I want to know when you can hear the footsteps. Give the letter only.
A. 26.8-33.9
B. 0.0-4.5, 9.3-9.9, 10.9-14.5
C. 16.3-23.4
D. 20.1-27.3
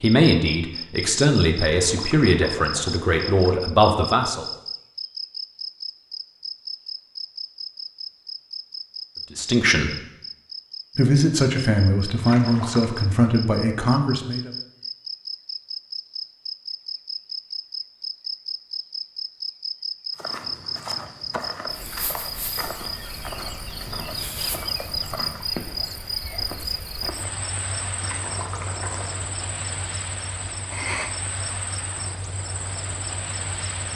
D.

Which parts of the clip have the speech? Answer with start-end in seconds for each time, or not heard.
0.0-4.5, 9.3-9.9, 10.9-14.5.